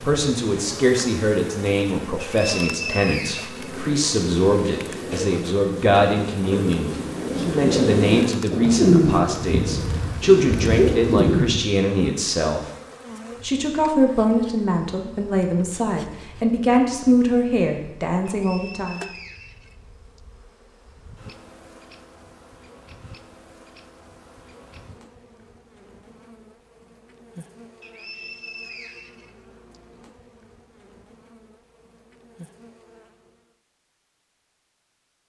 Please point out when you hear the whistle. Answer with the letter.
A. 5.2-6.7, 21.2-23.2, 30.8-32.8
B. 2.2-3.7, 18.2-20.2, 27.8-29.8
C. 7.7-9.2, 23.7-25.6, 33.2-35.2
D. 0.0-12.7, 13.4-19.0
B.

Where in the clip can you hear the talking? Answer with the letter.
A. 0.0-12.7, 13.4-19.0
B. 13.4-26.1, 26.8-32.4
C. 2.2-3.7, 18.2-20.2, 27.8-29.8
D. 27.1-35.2
A.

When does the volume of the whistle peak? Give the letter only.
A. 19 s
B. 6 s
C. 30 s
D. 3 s
D.